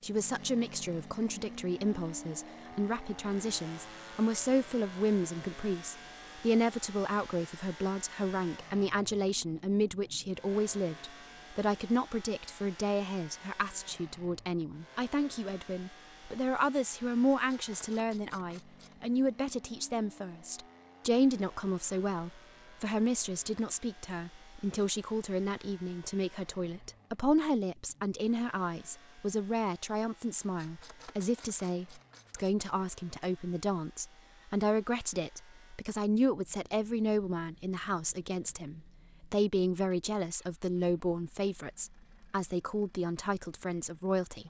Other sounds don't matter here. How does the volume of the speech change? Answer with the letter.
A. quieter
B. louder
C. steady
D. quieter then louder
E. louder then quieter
C.